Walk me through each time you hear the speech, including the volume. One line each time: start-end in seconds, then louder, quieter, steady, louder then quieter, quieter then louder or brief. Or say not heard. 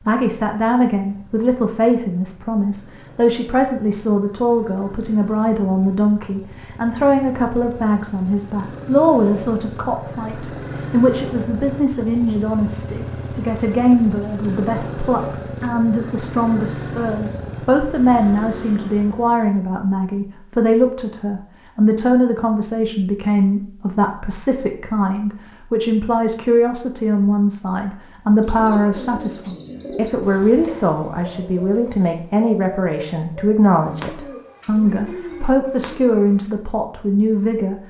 0.1-37.8 steady.